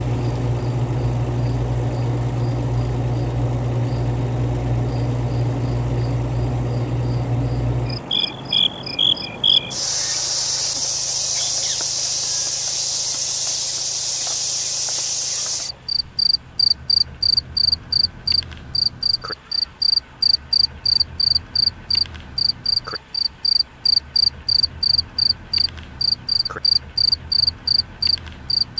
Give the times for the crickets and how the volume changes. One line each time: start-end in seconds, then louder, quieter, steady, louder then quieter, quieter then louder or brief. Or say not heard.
0.0-28.7 steady.